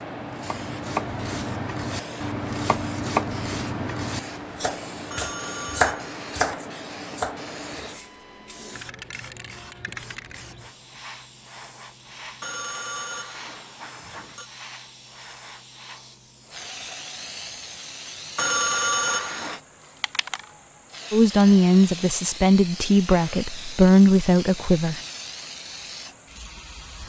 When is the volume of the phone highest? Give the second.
19 s.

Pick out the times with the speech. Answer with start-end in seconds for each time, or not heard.
21.1-25.0.